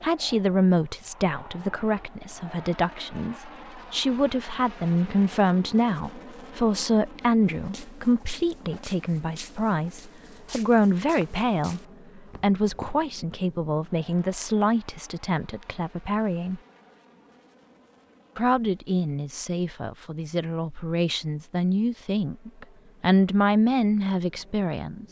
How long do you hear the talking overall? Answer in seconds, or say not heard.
23 s.